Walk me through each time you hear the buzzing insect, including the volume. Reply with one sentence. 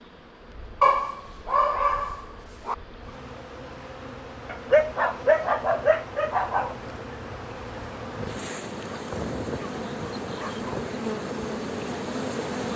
The buzzing insect can be heard from 0.0 to 12.7 s, getting louder.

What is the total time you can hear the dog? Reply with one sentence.
The dog can be heard for 6 seconds in total.